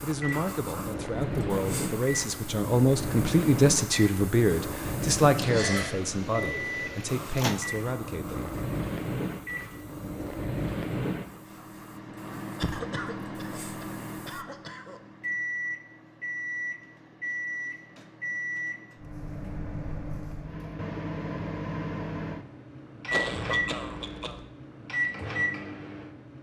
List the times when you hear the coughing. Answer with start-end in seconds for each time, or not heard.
5.3-6.0, 12.6-15.0, 23.1-24.4.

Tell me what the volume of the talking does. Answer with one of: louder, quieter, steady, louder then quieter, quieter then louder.
louder then quieter.